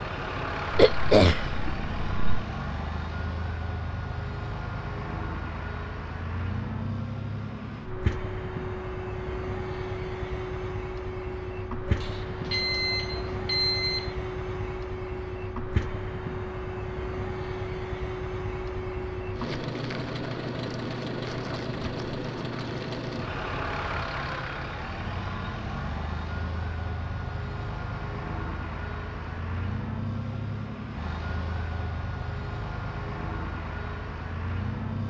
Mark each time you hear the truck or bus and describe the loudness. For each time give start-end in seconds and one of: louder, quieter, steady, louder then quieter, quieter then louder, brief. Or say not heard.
0.0-35.0 steady.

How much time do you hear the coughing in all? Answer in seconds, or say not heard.
2 s.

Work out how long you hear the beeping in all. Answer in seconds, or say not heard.
2 s.